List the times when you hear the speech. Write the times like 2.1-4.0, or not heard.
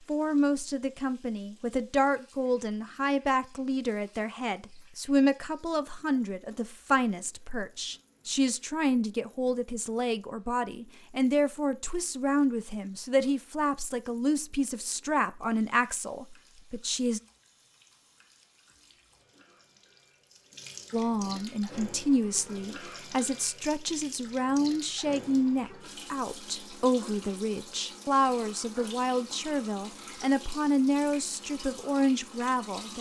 0.1-17.2, 20.9-32.9.